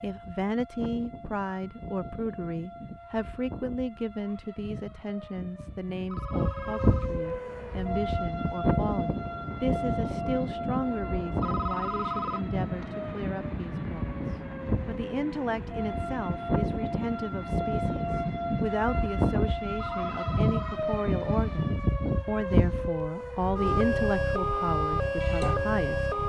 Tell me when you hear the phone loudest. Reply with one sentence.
The loudest moment of the phone is at 12 seconds.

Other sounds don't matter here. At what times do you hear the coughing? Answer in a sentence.
You can't hear the coughing here.